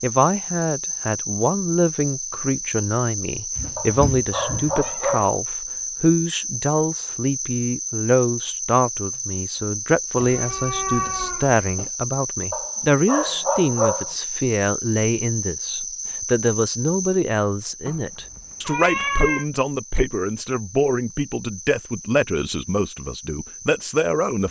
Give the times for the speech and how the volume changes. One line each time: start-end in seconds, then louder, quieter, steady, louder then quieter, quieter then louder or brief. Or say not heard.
0.0-24.4 steady.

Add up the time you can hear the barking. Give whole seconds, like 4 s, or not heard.
3 s.